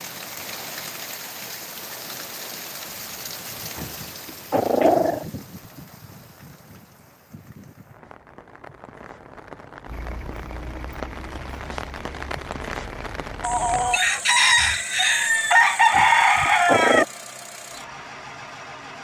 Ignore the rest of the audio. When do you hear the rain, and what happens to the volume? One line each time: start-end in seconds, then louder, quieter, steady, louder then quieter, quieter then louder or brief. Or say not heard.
0.0-14.0 quieter then louder.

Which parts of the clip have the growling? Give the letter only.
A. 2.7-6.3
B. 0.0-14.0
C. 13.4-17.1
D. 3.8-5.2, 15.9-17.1
D.